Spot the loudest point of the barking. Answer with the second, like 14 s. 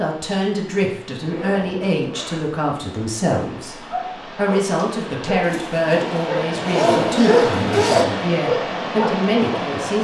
7 s.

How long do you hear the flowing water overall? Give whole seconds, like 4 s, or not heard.
10 s.